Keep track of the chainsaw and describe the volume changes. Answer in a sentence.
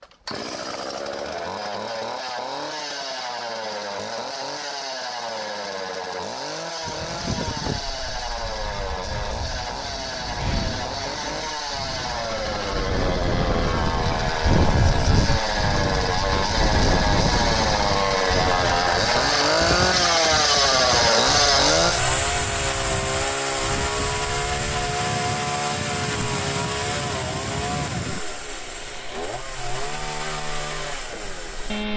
The loudness of the chainsaw goes up, then down.